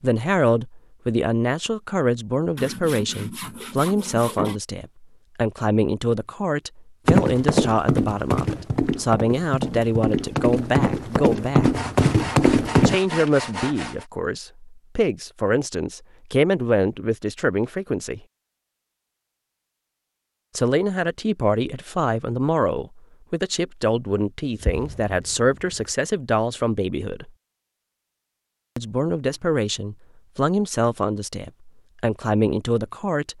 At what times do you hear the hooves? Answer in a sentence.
The hooves can be heard from 7.0 to 12.9 s.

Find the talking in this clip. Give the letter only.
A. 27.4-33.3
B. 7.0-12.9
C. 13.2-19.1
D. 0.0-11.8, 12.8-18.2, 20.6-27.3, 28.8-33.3
D.